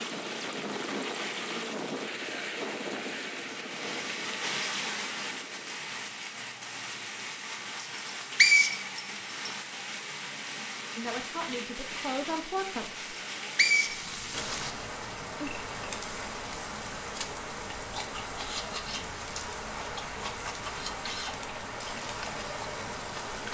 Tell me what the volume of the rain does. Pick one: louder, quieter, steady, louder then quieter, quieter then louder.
steady.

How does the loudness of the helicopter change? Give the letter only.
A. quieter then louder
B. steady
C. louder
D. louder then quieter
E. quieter
E.